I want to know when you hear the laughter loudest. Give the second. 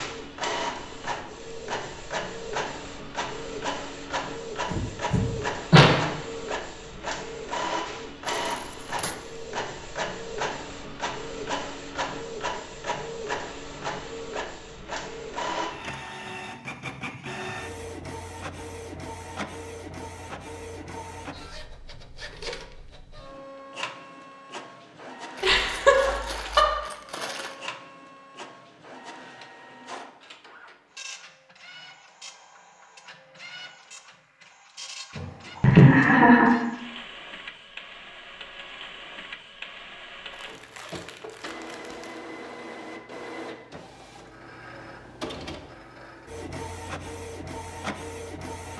36 s.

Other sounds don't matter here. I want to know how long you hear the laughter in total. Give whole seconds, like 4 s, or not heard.
4 s.